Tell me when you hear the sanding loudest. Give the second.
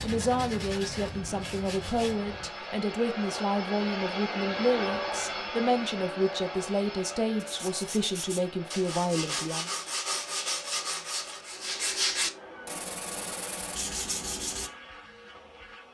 12 s.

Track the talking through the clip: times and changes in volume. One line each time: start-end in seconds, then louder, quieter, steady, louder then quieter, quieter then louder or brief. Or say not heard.
0.0-9.7 steady.